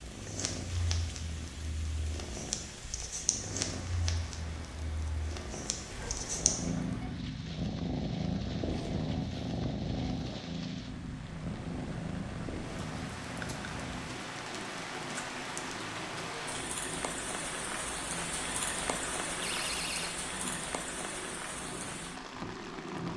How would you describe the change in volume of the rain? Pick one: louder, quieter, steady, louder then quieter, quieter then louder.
louder.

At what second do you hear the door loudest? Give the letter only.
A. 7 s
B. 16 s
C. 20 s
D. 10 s
C.